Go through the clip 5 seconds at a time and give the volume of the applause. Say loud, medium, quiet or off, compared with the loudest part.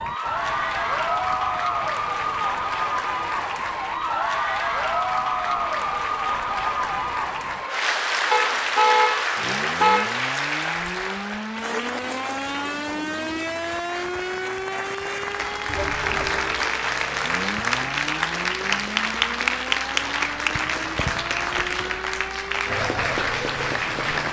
loud, loud, medium, loud, loud.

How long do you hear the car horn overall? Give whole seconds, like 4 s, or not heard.
3 s.